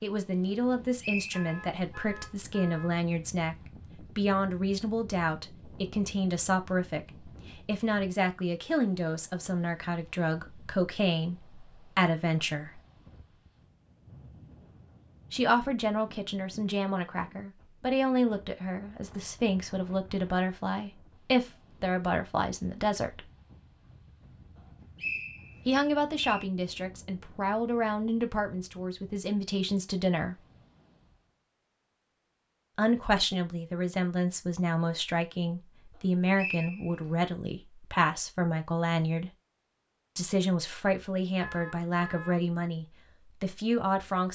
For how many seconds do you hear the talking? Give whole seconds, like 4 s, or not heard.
36 s.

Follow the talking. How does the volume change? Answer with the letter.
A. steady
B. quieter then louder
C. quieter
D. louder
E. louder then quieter
A.